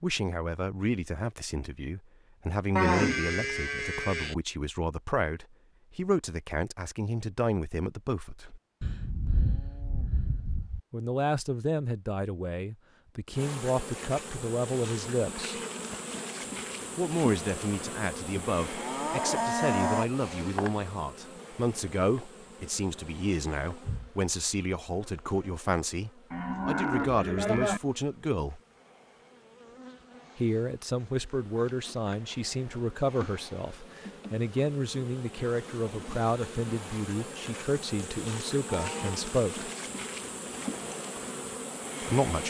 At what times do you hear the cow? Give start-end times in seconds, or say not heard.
2.8-4.3, 8.8-10.8, 18.4-20.1, 26.3-27.8, 38.0-39.2.